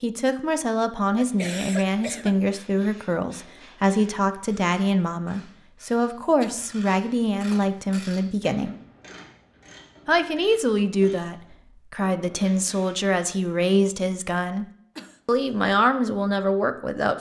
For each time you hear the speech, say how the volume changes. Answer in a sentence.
The speech can be heard from 0.0 to 8.8 s, at a steady volume; from 10.1 to 14.7 s, getting quieter then louder; and briefly from 15.2 to 17.1 s.